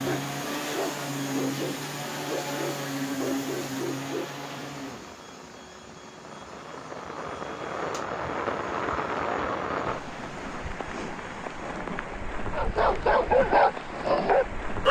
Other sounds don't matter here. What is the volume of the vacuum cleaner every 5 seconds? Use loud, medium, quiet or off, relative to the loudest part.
loud, quiet, quiet.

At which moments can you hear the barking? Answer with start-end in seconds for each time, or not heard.
0.0-4.3, 12.5-14.8.